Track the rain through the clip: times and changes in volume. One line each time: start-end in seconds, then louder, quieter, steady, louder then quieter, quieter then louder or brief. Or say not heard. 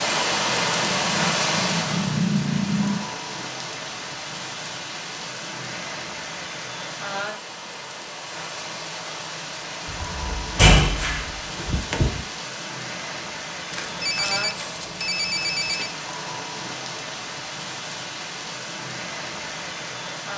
0.0-20.3 quieter.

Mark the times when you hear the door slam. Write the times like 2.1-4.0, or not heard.
9.8-12.2.